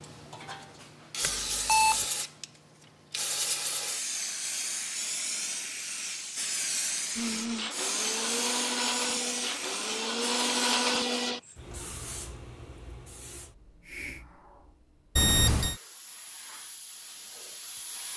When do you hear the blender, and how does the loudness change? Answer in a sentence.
The blender can be heard from 7.2 to 11.4 s, getting louder.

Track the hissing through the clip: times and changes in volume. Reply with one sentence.
You can hear the hissing from 0.0 to 18.1 s, getting quieter.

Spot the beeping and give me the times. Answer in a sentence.
The beeping can be heard from 1.2 to 2.0 s and from 15.2 to 15.8 s.